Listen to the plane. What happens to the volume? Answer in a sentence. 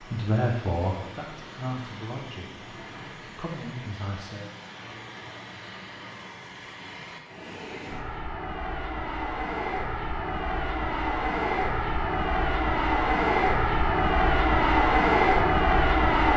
The loudness of the plane goes up.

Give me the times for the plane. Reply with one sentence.
You can hear the plane from 0.0 to 16.3 s.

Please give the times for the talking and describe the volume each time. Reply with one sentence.
You can hear the talking from 0.0 to 4.5 s, getting quieter then louder.